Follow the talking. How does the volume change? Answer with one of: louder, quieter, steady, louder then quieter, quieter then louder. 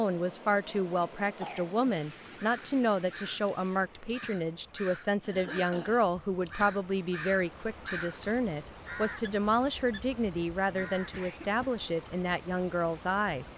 steady.